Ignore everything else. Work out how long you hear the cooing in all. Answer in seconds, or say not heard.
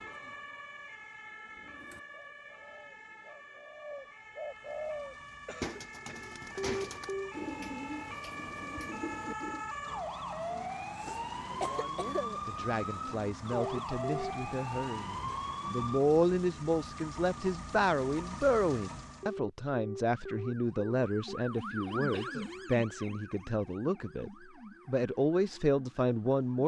8 s.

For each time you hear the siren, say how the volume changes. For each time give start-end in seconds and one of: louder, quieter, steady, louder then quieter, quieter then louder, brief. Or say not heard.
0.0-16.0 louder
20.1-26.6 louder then quieter.